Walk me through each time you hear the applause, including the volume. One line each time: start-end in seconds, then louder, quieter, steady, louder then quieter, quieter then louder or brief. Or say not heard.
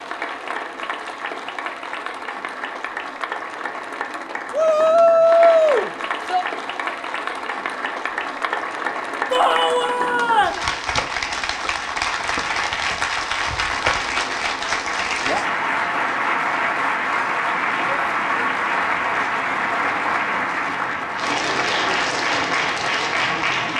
0.0-23.7 louder.